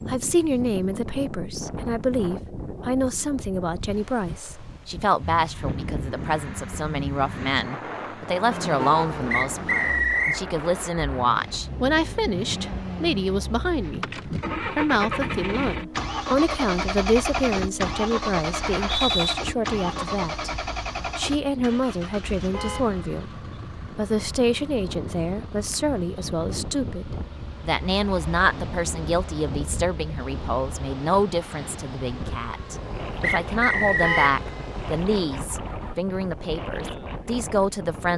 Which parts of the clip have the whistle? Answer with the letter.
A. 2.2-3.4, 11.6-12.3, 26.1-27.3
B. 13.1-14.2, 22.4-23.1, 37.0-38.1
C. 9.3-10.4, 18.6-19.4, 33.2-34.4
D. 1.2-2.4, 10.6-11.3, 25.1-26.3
C.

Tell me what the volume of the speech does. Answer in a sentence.
The volume of the speech stays about the same.